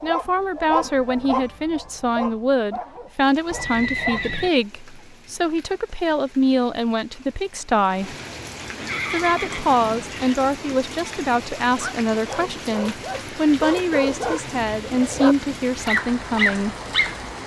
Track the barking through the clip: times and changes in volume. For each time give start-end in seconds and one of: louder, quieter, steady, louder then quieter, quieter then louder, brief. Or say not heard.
0.0-4.3 quieter
11.8-17.3 louder.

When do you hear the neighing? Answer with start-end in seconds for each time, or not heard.
3.5-4.5, 8.8-10.3.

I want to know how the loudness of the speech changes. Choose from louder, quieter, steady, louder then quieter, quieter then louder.
steady.